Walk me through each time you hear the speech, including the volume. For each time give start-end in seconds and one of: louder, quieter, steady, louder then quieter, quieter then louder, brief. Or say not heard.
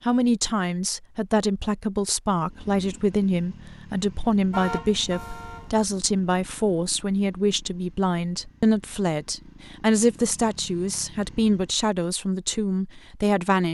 0.1-13.6 steady.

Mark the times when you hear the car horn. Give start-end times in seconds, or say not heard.
4.5-5.8.